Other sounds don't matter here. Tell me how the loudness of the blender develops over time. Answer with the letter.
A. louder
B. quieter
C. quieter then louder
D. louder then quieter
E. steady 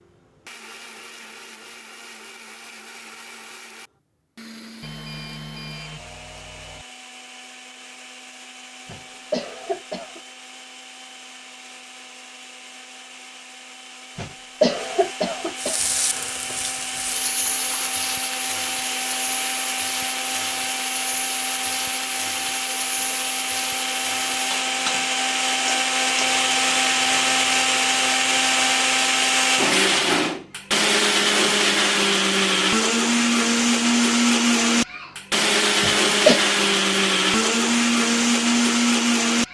A.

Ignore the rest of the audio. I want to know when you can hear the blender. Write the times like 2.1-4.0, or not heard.
0.0-39.4.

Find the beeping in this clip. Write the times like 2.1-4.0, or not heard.
4.8-6.8.